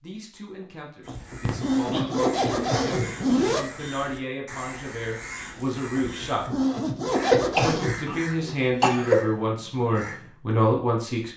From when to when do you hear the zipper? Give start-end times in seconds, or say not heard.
1.1-3.6, 6.0-8.2.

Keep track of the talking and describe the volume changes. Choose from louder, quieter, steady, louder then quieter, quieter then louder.
louder.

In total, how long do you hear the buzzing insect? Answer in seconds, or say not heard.
not heard.